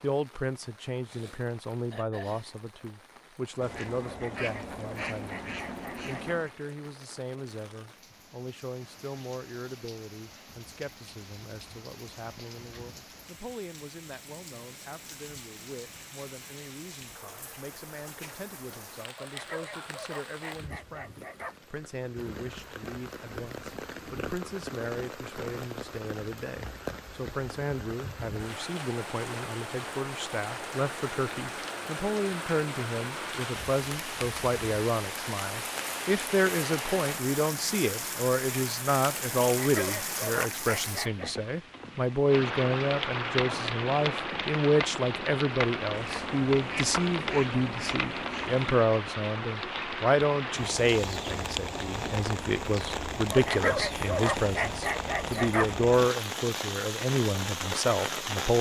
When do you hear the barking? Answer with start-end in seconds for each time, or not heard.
4.0-6.3, 19.1-21.6, 39.5-41.4, 53.3-55.8.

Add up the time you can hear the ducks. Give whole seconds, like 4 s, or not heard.
6 s.